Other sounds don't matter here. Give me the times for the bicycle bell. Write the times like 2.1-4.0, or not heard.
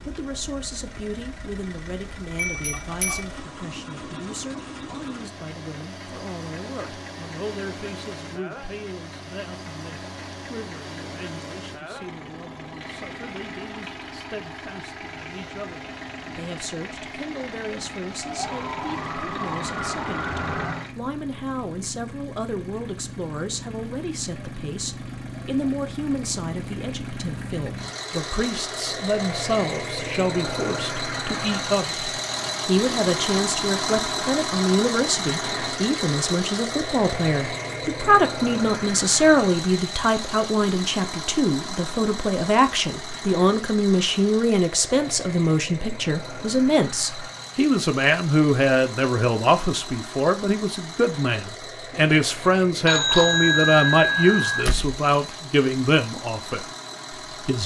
2.4-3.2, 52.9-54.6.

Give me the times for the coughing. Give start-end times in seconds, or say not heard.
not heard.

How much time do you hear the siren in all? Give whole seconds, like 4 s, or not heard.
3 s.